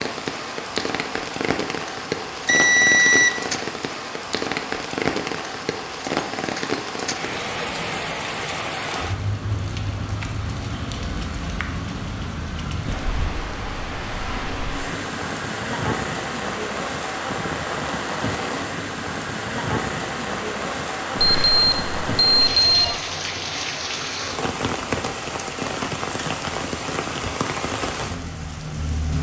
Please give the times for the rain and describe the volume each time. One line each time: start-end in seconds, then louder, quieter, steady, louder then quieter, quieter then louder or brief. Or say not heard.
0.0-29.1 steady.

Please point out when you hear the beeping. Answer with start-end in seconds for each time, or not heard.
2.5-3.4, 21.1-22.9.